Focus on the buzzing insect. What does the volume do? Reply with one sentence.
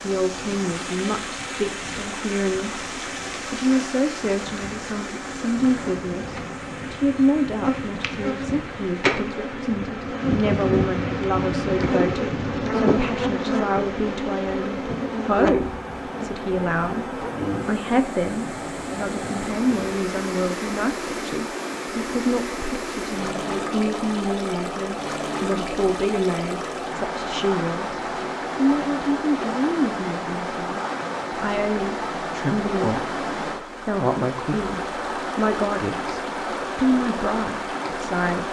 The volume of the buzzing insect goes up, then down.